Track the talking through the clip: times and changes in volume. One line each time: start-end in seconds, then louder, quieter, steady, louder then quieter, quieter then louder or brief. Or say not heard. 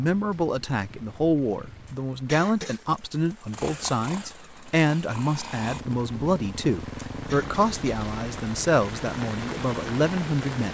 0.0-10.7 steady.